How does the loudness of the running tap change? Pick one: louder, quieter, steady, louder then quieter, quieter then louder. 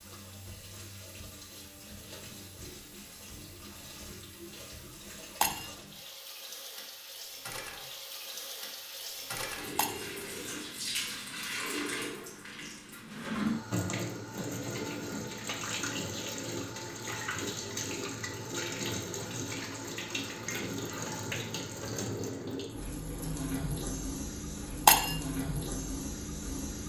louder.